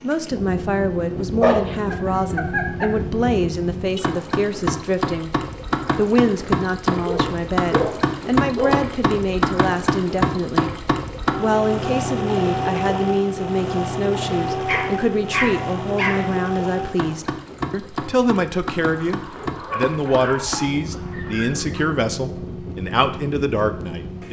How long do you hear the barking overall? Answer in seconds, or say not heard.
8 s.